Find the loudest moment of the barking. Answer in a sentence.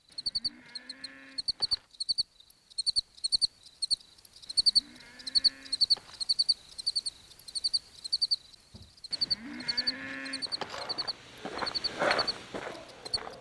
The loudest moment of the barking is at 12 seconds.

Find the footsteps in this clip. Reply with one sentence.
You can hear the footsteps from 10.3 to 13.3 s.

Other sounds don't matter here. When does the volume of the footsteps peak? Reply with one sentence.
The loudest moment of the footsteps is at 12 seconds.